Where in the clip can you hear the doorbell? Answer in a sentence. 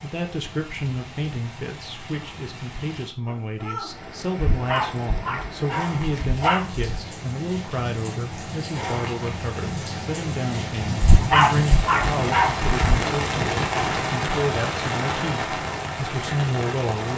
The doorbell can't be heard in this clip.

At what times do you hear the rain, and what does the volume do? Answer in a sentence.
You can hear the rain from 0.0 to 17.1 s, getting louder.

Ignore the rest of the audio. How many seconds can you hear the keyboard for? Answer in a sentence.
The keyboard can't be heard in this clip.